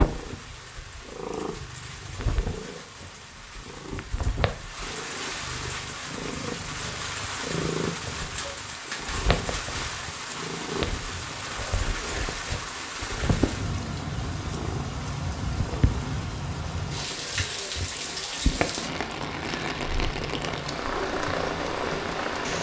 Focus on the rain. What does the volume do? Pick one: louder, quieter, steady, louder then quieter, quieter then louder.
louder.